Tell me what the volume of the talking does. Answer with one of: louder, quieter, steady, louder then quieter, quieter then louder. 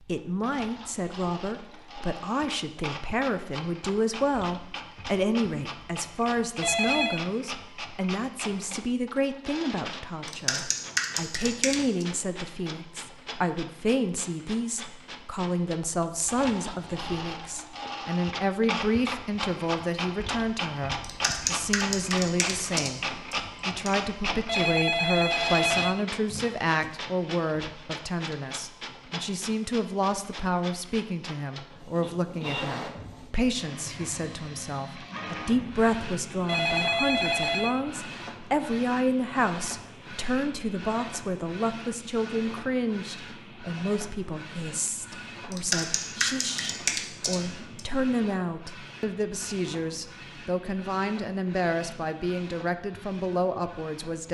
steady.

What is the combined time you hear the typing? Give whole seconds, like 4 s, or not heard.
7 s.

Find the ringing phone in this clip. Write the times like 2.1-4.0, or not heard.
6.6-7.2, 24.4-26.9, 36.5-37.8.